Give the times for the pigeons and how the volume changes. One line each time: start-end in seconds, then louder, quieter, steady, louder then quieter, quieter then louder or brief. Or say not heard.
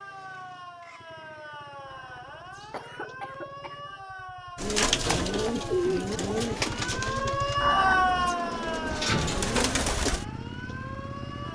4.5-10.2 quieter then louder.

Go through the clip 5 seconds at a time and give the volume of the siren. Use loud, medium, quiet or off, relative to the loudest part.
quiet, loud, quiet.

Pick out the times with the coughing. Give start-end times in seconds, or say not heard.
1.9-3.8, 7.6-8.3.